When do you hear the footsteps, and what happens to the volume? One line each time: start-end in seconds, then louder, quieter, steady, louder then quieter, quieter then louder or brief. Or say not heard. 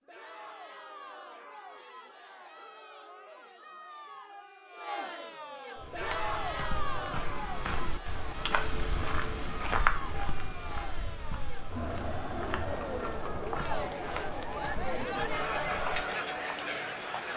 5.8-16.1 louder then quieter.